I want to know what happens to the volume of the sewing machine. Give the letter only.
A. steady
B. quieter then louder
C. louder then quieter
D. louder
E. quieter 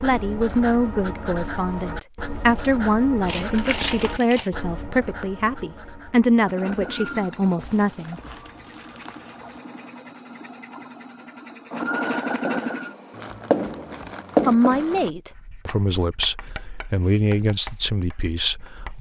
B.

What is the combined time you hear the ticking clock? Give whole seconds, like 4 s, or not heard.
not heard.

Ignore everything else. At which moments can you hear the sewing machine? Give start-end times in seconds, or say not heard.
6.3-12.9.